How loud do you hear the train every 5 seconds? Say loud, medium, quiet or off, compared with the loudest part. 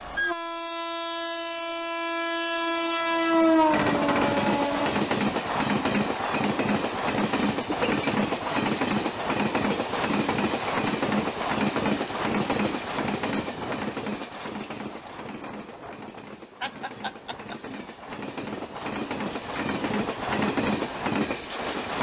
loud, loud, loud, medium, loud.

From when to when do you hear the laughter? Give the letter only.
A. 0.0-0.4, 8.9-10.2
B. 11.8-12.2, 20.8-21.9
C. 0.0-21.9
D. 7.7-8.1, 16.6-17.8
D.